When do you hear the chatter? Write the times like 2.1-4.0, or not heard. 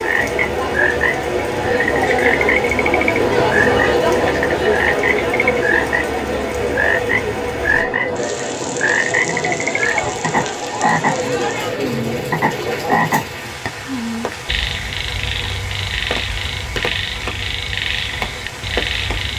0.0-13.1.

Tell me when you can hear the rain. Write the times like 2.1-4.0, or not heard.
0.0-19.3.